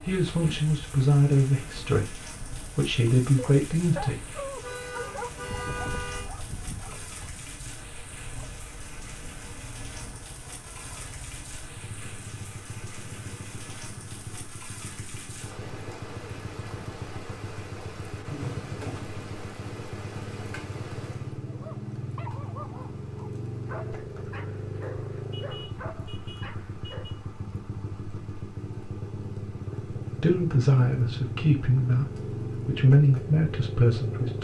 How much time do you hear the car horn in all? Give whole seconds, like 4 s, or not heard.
4 s.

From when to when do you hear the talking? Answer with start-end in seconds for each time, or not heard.
0.1-4.4, 30.2-34.3.